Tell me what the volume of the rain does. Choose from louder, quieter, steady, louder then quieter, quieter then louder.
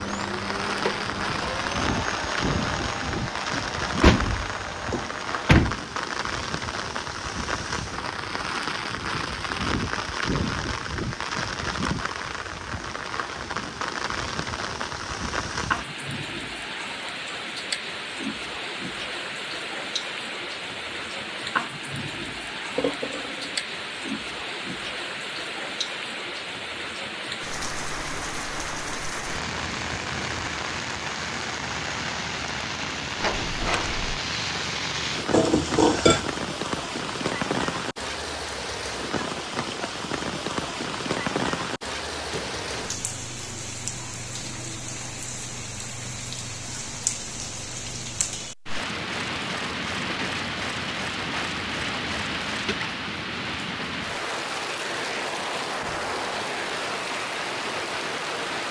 steady.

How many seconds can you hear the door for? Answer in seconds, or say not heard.
4 s.